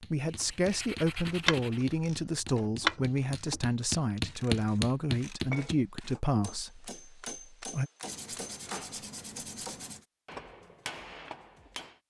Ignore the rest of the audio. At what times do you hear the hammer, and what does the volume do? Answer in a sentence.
You can hear the hammer from 0.0 to 12.0 s, getting louder then quieter.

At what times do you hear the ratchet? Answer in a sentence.
The ratchet can be heard from 0.2 to 5.7 s.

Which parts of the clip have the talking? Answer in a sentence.
The talking can be heard from 0.0 to 7.9 s.